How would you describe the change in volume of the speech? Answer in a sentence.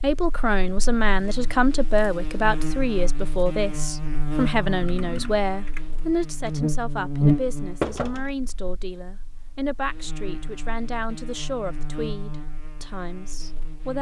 The loudness of the speech goes down.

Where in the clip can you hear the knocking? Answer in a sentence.
You can hear the knocking from 7.8 to 8.3 s.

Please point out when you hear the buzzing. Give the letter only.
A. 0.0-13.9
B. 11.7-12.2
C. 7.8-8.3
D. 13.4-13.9
A.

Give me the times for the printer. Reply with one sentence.
You can't hear the printer here.